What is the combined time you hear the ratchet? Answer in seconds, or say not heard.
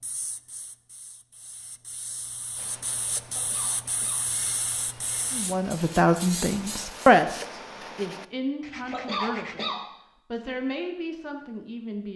not heard.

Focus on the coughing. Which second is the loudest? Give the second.
9 s.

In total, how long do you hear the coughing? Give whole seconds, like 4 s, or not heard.
2 s.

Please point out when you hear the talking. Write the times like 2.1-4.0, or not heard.
5.3-12.1.